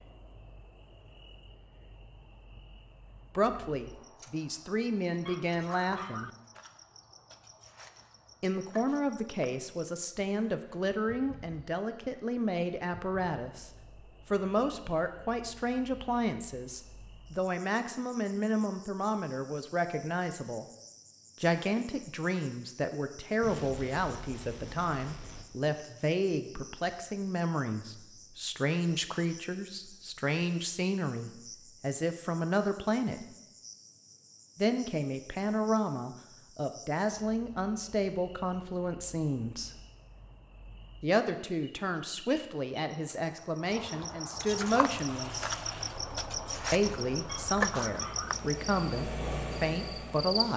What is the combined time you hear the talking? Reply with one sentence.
You can hear the talking for 41 seconds altogether.